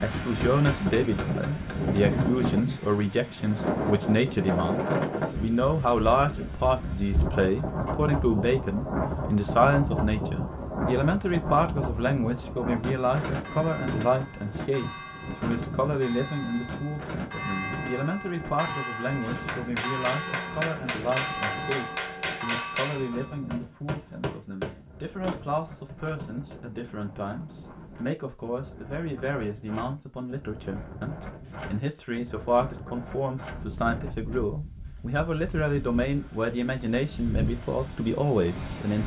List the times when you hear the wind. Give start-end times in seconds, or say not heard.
0.0-39.0.